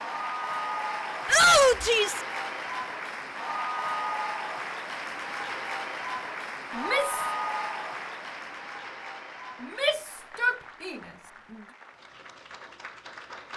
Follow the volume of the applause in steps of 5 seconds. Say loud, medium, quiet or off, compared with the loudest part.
loud, loud, quiet.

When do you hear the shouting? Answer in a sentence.
You can hear the shouting from 1.2 to 2.2 s, from 6.7 to 7.3 s and from 9.6 to 11.0 s.